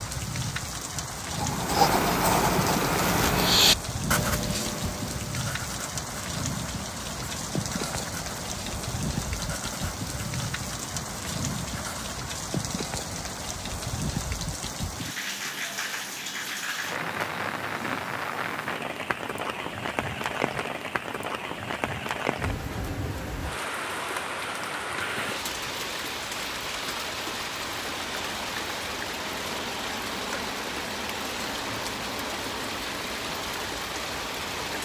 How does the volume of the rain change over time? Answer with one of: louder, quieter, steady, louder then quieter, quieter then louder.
steady.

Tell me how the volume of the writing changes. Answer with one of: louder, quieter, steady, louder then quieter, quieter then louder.
quieter.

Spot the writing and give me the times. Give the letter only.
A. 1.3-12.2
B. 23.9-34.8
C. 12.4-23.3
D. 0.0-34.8
A.